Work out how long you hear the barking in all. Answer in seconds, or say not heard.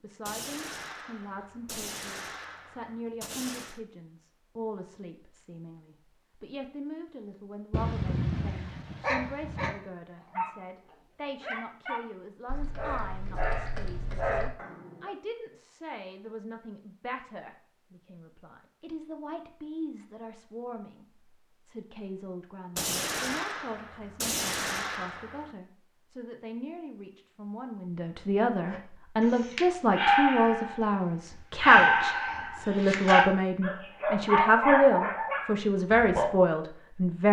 14 s.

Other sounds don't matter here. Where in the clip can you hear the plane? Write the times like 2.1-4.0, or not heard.
not heard.